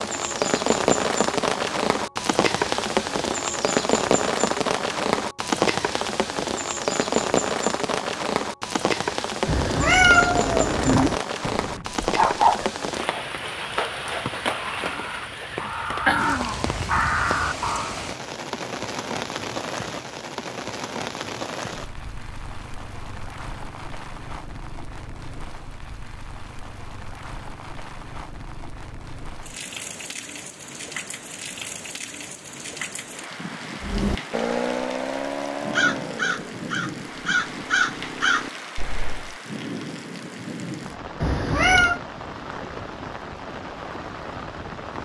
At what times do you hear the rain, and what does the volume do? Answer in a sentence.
The rain can be heard from 0.0 to 45.0 s, getting quieter.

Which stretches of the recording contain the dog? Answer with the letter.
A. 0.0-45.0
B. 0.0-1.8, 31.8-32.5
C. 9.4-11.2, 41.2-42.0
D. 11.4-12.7
D.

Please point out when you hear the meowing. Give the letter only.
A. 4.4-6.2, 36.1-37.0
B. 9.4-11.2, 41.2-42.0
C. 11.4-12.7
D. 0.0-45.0
B.